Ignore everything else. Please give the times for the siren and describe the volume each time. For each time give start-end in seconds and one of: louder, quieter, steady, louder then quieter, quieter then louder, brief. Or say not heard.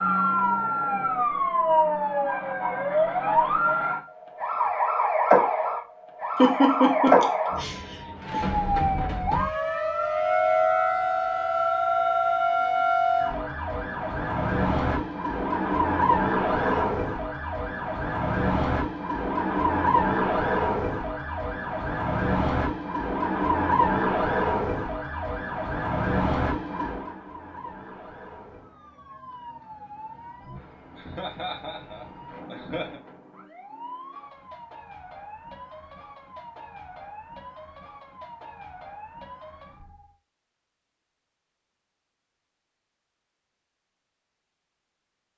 0.0-40.1 quieter.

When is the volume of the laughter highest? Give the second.
7 s.